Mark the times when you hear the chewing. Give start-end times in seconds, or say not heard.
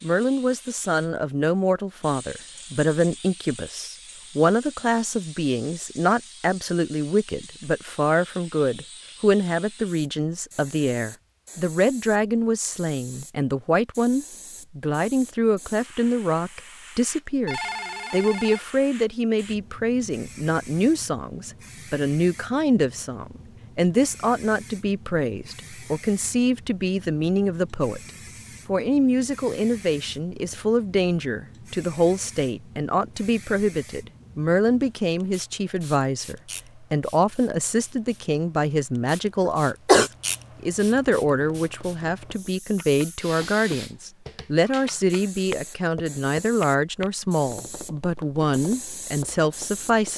not heard.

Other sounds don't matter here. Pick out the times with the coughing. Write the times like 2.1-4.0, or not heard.
39.5-40.1.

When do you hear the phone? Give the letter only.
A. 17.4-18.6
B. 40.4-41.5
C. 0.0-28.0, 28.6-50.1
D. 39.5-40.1
A.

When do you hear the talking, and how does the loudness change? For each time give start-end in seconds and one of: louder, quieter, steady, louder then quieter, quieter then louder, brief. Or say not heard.
0.0-28.0 steady
28.6-50.1 steady.